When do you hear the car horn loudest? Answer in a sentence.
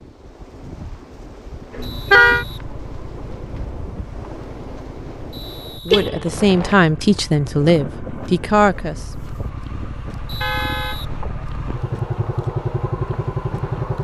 The volume of the car horn peaks at 2 seconds.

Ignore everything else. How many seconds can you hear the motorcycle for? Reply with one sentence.
You can hear the motorcycle for 12 seconds altogether.